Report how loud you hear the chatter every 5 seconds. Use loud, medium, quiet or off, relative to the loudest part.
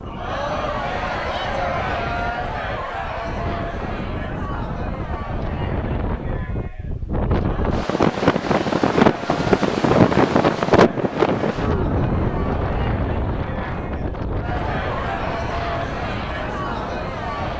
loud, medium, medium, loud.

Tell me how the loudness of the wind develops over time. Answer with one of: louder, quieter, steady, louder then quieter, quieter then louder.
louder then quieter.